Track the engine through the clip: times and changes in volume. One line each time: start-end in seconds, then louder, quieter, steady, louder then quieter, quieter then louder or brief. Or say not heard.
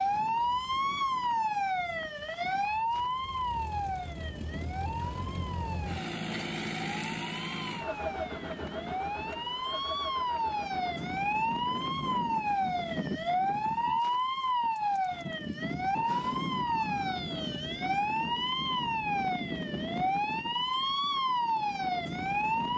0.0-11.2 louder then quieter.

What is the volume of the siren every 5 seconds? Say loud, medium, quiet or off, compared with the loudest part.
loud, medium, loud, loud, loud.